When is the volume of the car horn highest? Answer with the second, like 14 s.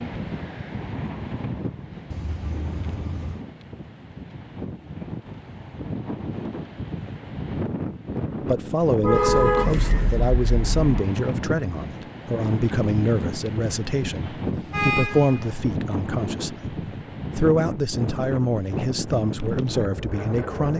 9 s.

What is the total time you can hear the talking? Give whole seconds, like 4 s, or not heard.
12 s.